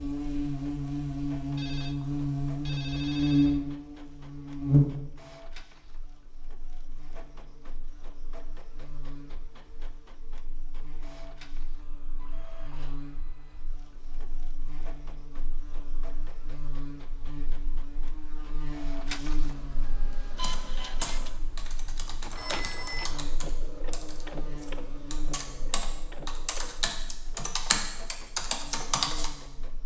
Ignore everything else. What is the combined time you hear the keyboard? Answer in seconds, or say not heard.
9 s.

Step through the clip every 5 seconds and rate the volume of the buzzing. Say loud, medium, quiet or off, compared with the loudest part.
loud, quiet, quiet, quiet, quiet, quiet.